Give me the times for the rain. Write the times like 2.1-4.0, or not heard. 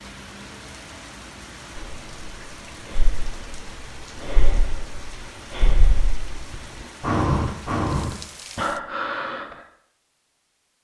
0.0-8.8.